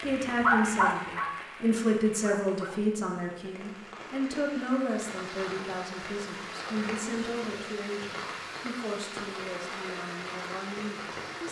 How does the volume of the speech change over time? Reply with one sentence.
The volume of the speech goes down.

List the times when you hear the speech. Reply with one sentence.
The speech can be heard from 0.0 to 11.4 s.